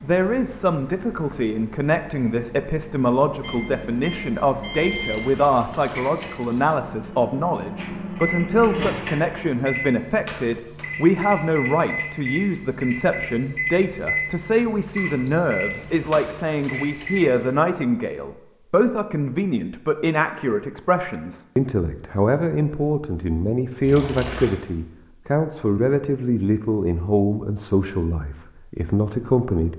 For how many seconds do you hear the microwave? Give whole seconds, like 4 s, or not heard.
17 s.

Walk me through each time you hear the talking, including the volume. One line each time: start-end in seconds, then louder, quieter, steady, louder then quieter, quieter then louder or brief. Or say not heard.
0.0-29.7 steady.